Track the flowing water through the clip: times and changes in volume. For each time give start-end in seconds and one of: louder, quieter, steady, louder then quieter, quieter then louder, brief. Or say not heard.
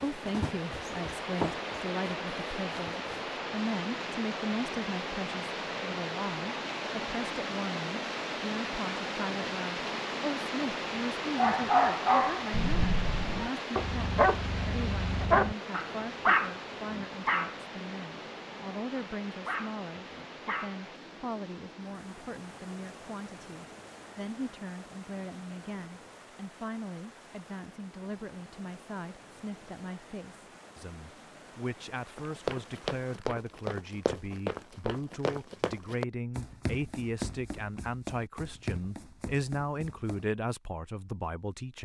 0.0-33.2 quieter.